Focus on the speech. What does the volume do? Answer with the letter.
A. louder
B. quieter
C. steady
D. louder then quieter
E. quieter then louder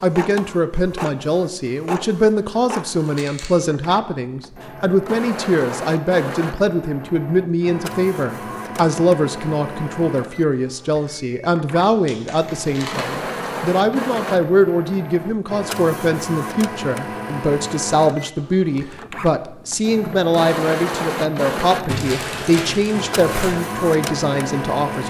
C.